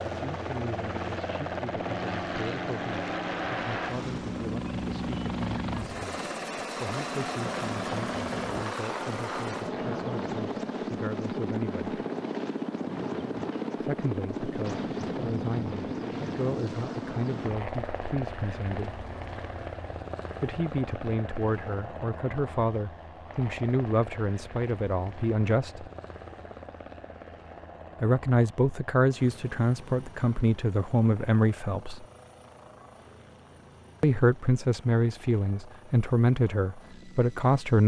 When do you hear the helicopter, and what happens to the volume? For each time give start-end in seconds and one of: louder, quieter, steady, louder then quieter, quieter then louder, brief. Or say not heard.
0.0-37.8 quieter.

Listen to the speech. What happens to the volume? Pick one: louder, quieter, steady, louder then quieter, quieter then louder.
louder.